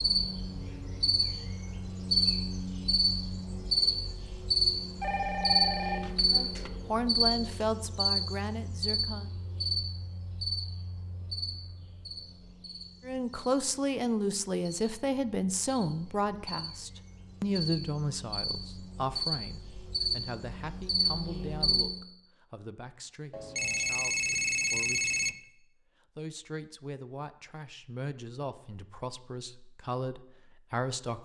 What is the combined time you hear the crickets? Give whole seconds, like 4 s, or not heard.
22 s.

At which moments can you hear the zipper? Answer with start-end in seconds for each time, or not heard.
not heard.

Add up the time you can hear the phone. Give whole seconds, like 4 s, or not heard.
4 s.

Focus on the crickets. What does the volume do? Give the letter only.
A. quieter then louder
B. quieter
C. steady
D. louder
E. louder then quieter
A.